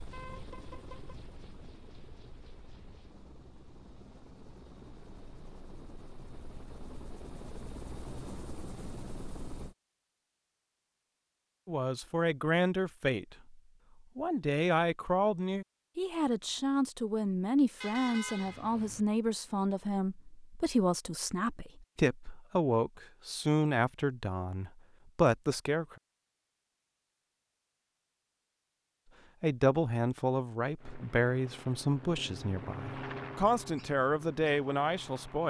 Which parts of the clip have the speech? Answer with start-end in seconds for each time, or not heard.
11.7-25.9, 29.4-35.4.